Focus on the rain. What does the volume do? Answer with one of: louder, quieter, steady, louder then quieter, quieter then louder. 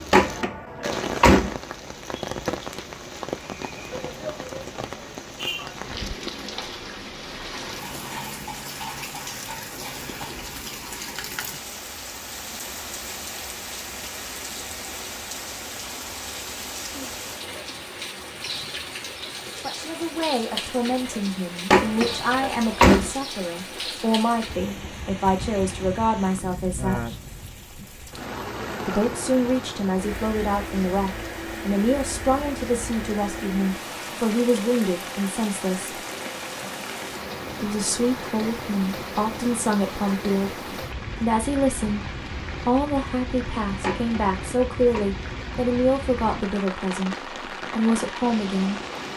steady.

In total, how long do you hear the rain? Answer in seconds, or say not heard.
49 s.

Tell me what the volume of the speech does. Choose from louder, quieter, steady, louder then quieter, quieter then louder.
steady.